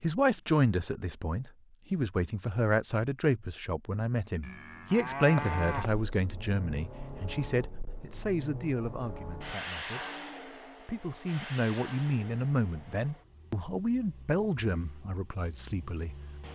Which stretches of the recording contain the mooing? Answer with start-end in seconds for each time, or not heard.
4.4-6.0.